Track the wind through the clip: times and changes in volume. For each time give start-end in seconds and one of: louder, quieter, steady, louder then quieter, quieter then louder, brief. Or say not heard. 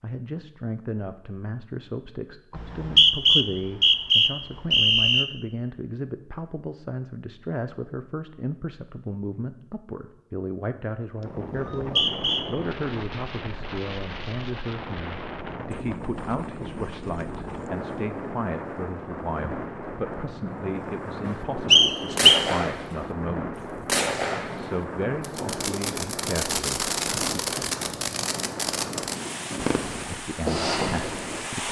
11.2-31.6 steady.